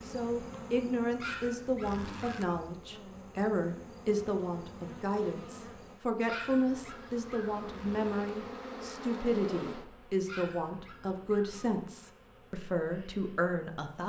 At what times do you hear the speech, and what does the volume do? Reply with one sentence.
The speech can be heard from 0.1 to 14.0 s, at a steady volume.